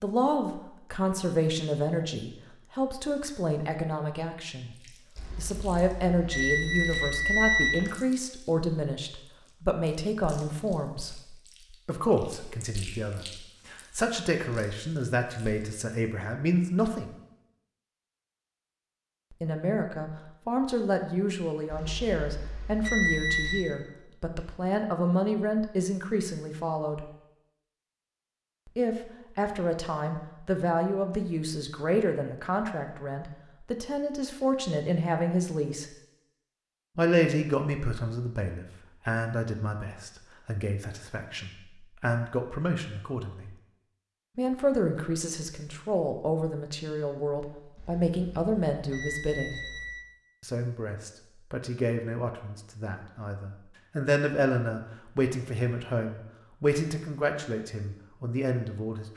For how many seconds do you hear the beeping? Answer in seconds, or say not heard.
7 s.